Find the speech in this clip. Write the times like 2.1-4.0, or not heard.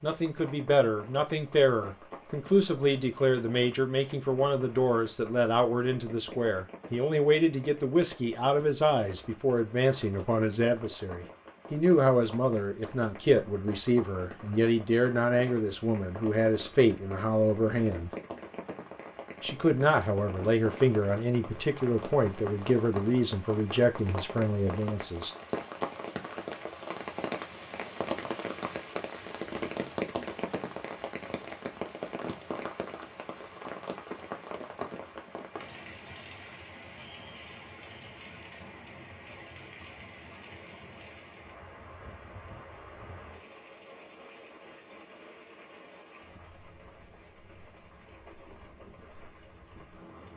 0.0-18.1, 19.4-25.4.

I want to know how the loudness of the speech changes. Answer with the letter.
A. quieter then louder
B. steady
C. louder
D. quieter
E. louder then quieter
B.